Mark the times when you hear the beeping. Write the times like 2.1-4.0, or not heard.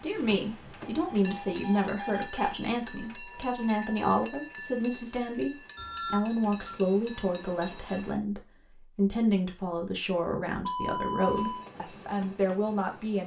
0.9-2.5, 5.8-6.8, 10.7-11.7.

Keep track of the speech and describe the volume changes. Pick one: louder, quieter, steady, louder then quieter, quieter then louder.
steady.